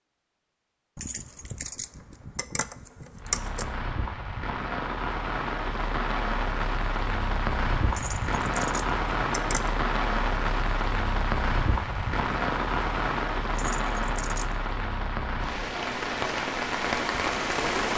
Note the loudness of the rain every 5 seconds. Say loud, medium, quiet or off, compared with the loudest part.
medium, loud, loud, loud.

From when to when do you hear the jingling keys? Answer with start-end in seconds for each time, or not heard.
0.9-3.6, 7.9-9.7, 13.5-14.7.